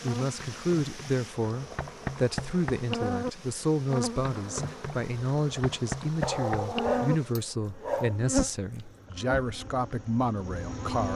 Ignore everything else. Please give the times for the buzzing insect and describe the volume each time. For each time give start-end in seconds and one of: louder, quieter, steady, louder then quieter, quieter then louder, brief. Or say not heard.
0.0-11.1 louder then quieter.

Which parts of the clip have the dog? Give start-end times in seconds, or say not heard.
6.2-8.5.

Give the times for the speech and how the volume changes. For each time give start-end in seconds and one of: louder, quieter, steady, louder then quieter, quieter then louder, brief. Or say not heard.
0.0-11.1 steady.